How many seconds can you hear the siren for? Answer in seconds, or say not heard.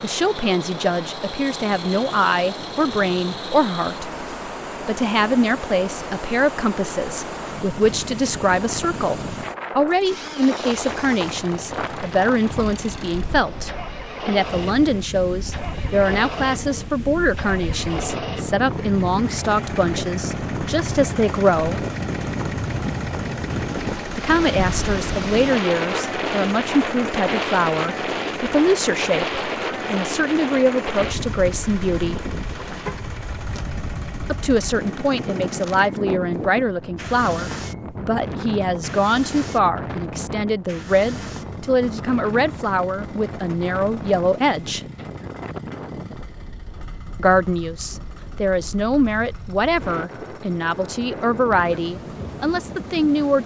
not heard.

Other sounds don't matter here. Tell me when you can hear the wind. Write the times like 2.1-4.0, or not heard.
0.0-53.4.